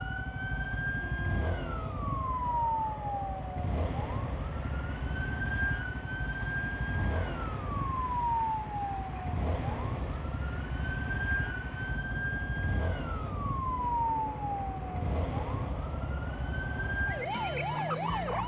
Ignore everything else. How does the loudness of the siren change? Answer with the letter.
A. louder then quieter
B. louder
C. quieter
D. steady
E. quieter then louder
D.